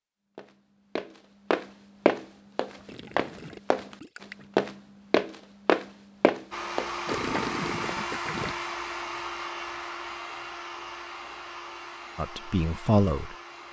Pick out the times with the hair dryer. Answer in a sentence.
You can hear the hair dryer from 6.5 to 13.6 s.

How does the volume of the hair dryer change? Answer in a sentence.
The volume of the hair dryer goes down.